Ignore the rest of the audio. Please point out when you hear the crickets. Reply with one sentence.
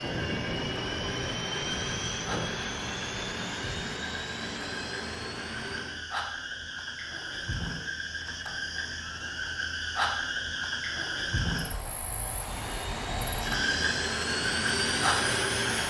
You can hear the crickets from 0.0 to 15.8 s.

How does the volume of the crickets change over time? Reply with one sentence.
The volume of the crickets goes up.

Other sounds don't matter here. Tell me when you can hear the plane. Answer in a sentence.
You can hear the plane from 0.0 to 6.0 s and from 12.3 to 15.8 s.